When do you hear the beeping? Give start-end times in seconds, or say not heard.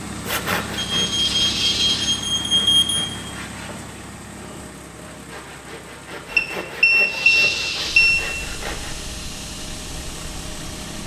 0.8-3.0, 6.3-8.2.